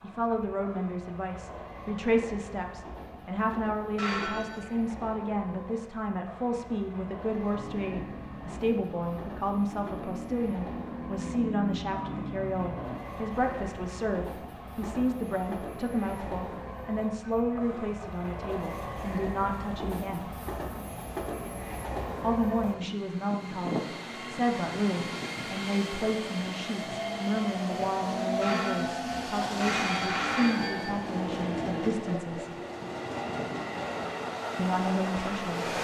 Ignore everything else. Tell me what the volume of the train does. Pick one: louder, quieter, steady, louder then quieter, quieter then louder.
louder.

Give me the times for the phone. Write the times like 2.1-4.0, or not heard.
4.0-4.8, 28.4-30.9.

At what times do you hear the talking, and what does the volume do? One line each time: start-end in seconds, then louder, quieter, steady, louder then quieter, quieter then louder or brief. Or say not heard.
0.0-20.3 steady
22.2-32.5 steady
34.5-35.8 brief.